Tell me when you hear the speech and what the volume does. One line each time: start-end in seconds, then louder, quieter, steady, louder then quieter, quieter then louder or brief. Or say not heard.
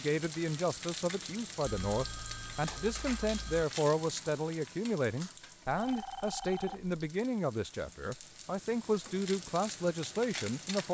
0.0-10.8 steady.